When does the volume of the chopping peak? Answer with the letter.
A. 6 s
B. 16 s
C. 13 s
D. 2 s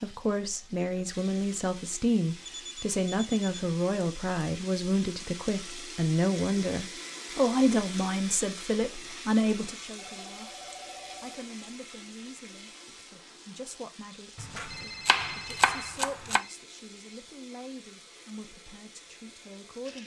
B.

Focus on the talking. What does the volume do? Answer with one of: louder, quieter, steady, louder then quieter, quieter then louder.
quieter.